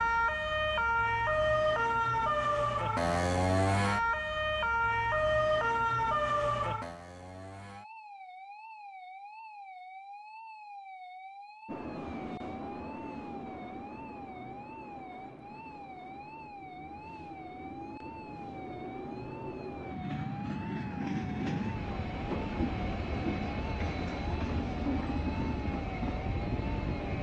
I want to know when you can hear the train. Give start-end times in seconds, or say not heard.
11.7-27.1.